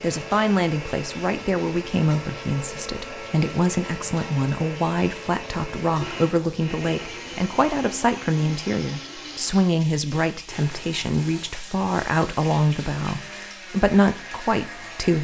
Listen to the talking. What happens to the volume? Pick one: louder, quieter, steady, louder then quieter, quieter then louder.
steady.